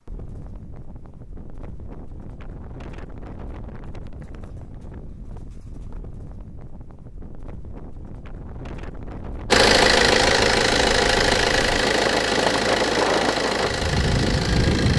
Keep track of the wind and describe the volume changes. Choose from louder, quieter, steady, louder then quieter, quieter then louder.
louder.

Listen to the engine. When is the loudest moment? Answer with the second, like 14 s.
10 s.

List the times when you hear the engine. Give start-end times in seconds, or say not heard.
9.5-14.9.